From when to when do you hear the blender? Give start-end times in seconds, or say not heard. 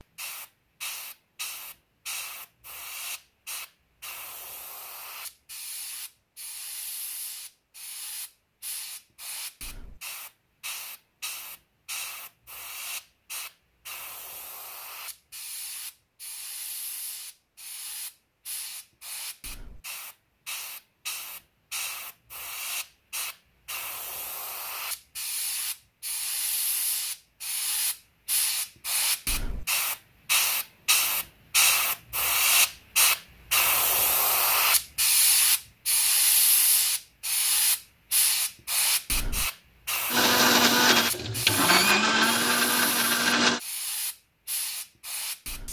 40.1-43.6.